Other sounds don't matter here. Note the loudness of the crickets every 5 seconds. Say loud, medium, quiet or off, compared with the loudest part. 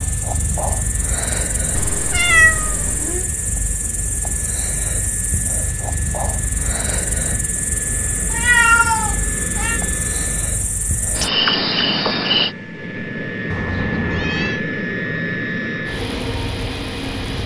medium, medium, loud, off.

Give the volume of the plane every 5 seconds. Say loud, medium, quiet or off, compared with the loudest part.
quiet, medium, loud, loud.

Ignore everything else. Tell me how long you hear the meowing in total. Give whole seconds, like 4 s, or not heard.
4 s.